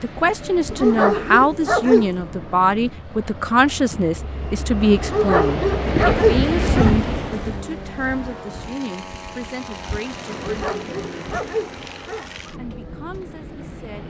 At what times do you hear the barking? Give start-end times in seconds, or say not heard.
0.7-2.1, 5.0-7.0, 10.3-12.3.